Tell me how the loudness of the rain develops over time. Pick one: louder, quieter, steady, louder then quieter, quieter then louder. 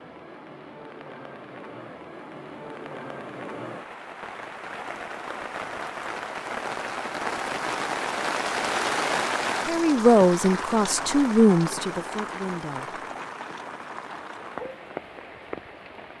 louder then quieter.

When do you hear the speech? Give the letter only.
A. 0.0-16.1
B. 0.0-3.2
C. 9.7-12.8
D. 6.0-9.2
C.